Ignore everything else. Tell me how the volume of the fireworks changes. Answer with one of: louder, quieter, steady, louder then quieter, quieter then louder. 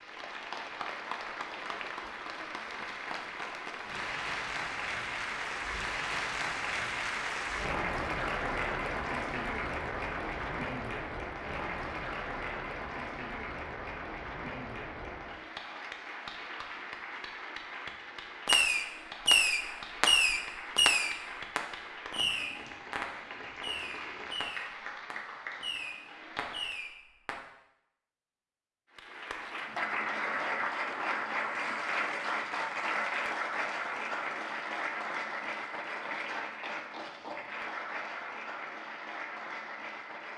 quieter.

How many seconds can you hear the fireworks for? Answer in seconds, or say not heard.
9 s.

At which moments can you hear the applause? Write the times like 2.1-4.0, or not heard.
0.0-26.9, 28.9-40.3.